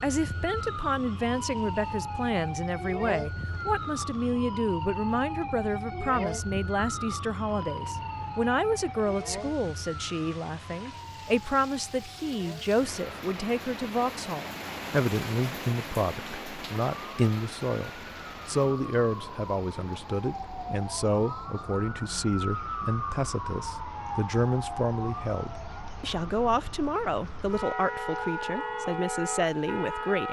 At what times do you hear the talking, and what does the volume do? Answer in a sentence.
You can hear the talking from 0.0 to 30.2 s, at a steady volume.